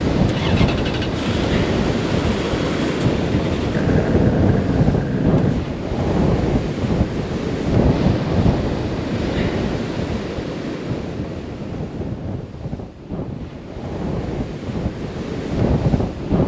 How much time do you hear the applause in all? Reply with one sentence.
The applause can't be heard in this clip.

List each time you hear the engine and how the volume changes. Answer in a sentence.
The engine can be heard from 0.1 to 5.7 s, getting louder.